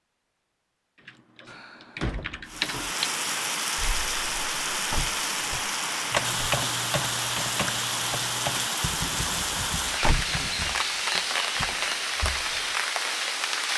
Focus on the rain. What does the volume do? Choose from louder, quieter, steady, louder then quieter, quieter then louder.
steady.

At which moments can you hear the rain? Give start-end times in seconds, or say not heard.
2.5-13.7.